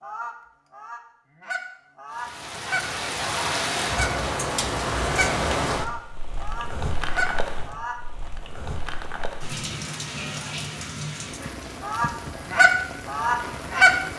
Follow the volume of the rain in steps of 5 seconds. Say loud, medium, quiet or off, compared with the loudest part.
loud, loud, medium.